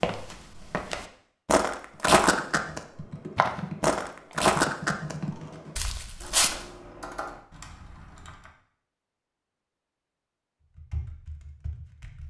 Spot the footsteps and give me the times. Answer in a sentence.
You can hear the footsteps from 0.0 to 5.2 s and from 5.8 to 6.5 s.